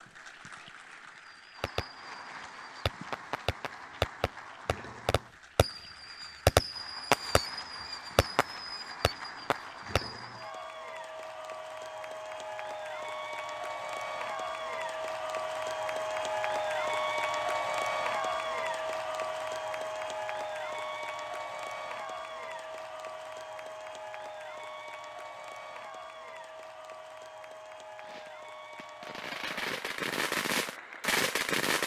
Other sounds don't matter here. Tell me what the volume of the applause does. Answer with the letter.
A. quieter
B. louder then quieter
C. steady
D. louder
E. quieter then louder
B.